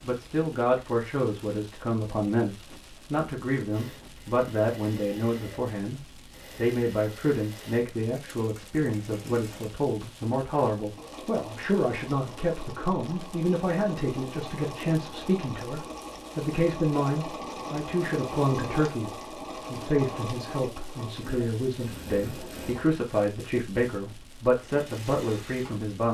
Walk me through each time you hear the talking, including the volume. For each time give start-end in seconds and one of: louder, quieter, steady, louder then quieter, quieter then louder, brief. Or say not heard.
0.0-26.0 steady.